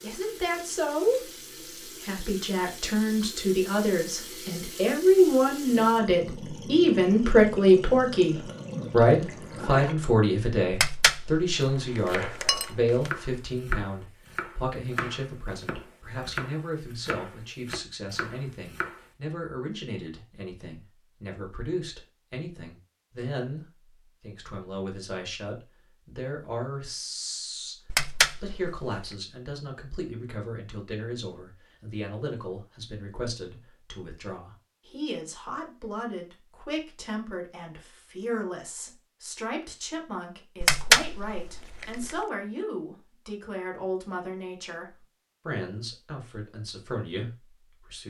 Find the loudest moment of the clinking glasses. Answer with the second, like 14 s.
41 s.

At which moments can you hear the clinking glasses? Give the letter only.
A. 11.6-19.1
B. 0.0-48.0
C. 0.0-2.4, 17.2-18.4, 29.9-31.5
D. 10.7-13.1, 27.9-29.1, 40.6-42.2
D.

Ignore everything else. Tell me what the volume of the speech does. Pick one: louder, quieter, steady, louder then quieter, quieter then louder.
quieter.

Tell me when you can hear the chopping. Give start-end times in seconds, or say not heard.
11.6-19.1.